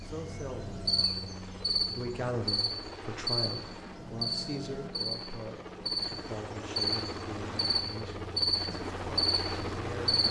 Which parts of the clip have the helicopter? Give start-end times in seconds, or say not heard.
0.0-10.2.